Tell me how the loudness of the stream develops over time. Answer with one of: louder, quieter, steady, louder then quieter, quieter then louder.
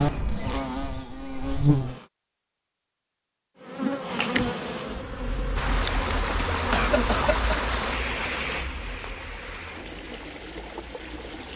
quieter.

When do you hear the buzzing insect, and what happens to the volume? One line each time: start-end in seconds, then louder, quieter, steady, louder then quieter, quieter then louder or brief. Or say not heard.
0.0-2.0 brief
3.6-11.5 quieter.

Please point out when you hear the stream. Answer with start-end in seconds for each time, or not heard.
5.5-11.5.